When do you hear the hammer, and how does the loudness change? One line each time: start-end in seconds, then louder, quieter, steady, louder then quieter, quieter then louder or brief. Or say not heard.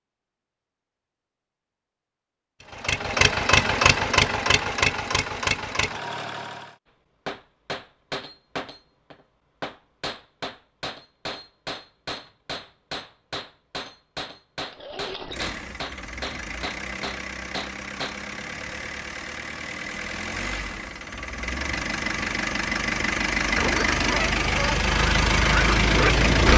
7.2-18.2 steady.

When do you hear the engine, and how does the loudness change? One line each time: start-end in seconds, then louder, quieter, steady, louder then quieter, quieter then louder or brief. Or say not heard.
2.7-6.8 quieter
14.7-26.5 louder.